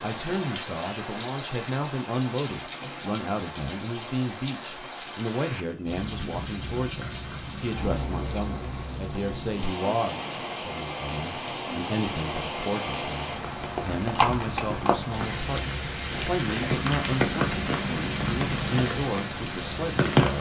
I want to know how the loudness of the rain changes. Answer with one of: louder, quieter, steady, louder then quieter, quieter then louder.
louder.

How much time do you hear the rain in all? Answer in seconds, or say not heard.
20 s.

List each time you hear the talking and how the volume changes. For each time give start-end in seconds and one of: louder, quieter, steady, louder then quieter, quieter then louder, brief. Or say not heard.
0.0-20.3 steady.